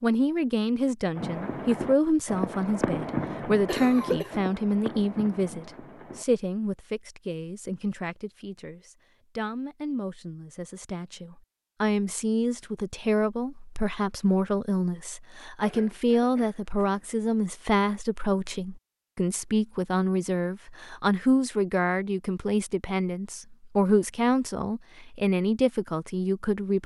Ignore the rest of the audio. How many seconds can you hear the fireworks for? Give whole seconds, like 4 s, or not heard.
5 s.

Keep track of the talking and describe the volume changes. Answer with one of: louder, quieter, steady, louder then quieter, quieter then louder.
quieter then louder.